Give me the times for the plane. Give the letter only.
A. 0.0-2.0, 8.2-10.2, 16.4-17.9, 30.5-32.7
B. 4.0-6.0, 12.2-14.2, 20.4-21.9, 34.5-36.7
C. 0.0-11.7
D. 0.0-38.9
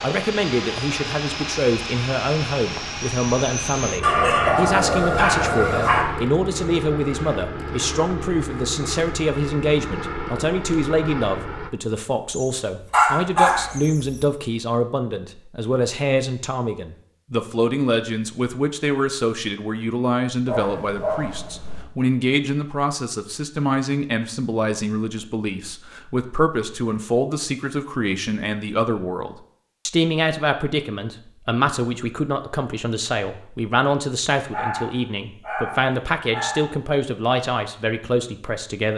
C.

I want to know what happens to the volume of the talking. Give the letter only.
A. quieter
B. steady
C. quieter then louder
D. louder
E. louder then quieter
B.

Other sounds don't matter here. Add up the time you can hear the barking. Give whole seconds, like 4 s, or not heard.
8 s.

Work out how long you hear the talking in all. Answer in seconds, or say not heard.
39 s.